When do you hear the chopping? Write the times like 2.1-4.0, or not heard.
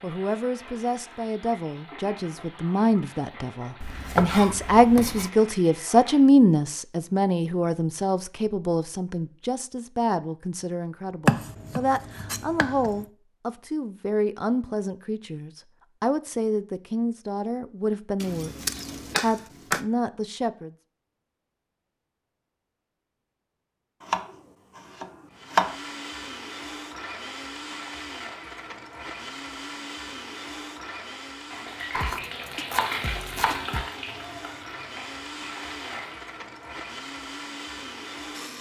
3.8-5.3, 11.2-13.1, 18.2-19.9, 24.0-25.8, 31.9-33.9.